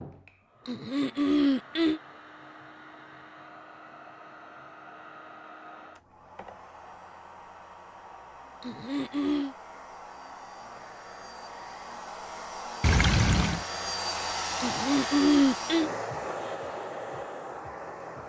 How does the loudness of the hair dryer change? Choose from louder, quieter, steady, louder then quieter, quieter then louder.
louder.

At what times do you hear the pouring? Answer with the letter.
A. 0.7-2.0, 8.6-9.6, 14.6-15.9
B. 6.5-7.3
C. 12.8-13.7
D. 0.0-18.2
C.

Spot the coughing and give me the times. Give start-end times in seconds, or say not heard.
0.7-2.0, 8.6-9.6, 14.6-15.9.